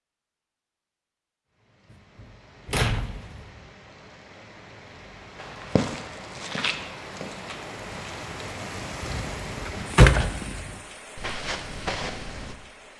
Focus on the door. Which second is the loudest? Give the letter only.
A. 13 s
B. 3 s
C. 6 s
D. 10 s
D.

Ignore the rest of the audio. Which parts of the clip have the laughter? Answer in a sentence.
You can't hear the laughter here.